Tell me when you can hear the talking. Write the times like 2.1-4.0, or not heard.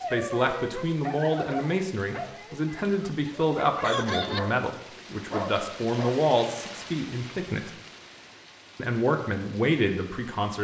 0.1-7.7, 8.8-10.5.